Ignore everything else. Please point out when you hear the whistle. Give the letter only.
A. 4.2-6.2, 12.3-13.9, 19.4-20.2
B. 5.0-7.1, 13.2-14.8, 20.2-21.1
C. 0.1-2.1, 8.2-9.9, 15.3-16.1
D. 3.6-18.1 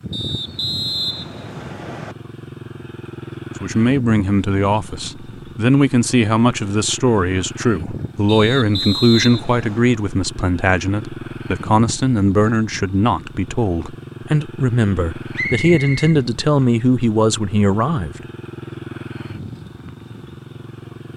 C.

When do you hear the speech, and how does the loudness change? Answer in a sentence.
The speech can be heard from 3.6 to 18.1 s, at a steady volume.